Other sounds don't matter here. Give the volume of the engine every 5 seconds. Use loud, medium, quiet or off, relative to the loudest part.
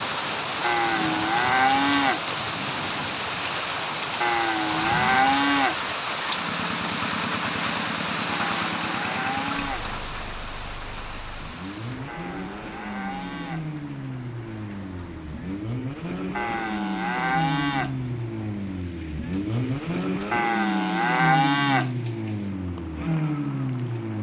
off, medium, medium, loud, loud.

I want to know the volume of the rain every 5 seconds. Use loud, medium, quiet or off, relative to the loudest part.
loud, loud, quiet, quiet, quiet.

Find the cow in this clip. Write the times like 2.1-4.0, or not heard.
0.6-2.2, 4.2-5.8, 8.2-9.9, 12.1-13.7, 16.4-17.9, 20.3-21.9.